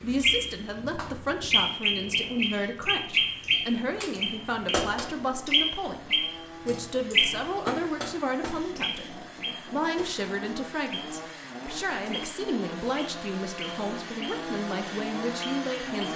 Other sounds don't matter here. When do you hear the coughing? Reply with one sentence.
The coughing can't be heard in this clip.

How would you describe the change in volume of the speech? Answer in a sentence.
The volume of the speech stays about the same.